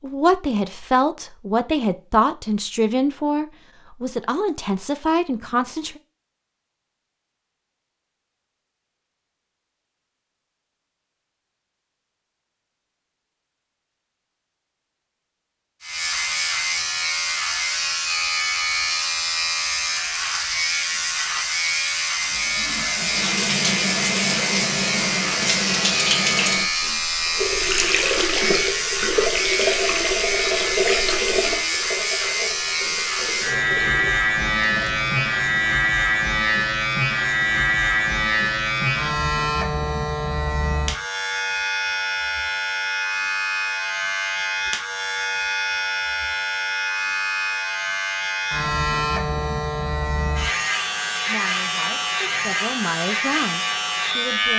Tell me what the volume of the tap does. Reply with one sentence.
The loudness of the tap goes down.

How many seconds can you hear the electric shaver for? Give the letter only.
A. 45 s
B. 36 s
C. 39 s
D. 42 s
C.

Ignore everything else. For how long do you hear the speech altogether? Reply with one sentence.
The speech can be heard for 9 seconds in total.